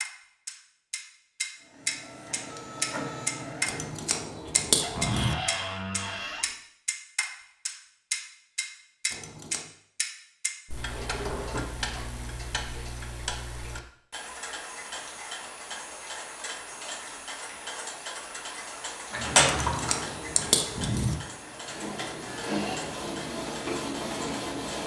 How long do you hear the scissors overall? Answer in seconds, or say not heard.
4 s.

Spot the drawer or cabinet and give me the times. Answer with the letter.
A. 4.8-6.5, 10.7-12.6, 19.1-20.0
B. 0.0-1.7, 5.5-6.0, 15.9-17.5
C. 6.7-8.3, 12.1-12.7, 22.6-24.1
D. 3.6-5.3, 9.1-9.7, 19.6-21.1
A.